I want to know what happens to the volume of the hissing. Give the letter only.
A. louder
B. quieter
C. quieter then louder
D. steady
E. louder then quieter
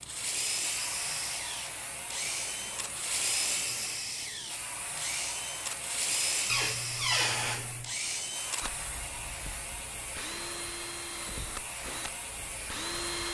D.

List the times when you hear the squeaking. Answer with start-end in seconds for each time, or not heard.
6.5-7.9.